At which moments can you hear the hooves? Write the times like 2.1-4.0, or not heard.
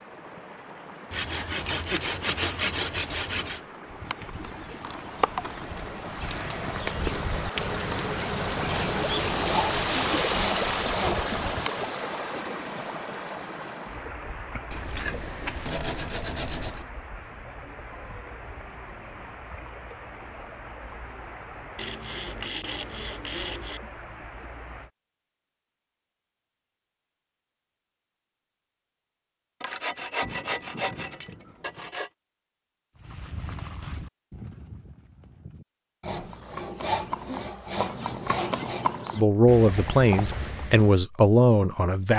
3.9-11.8, 33.0-41.0.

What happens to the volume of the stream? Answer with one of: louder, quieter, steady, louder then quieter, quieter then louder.
louder then quieter.